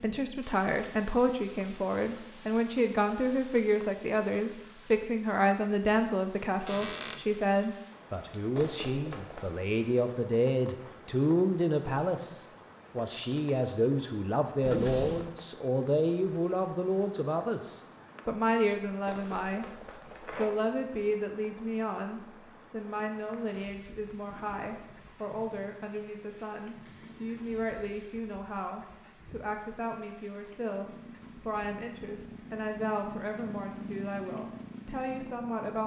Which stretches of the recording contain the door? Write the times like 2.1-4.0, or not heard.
6.7-7.2, 14.6-15.3, 26.8-28.2.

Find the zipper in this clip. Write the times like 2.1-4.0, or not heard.
8.6-9.7, 19.1-20.5.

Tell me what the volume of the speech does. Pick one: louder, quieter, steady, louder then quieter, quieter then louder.
quieter.